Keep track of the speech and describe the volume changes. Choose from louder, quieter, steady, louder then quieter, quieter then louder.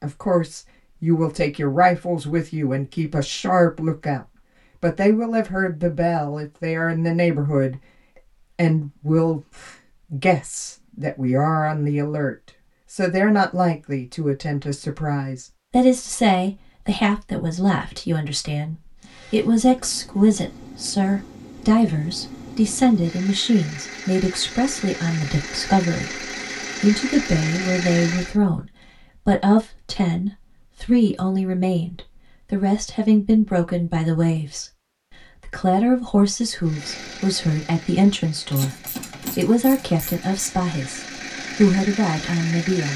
steady.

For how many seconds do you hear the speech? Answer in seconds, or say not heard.
42 s.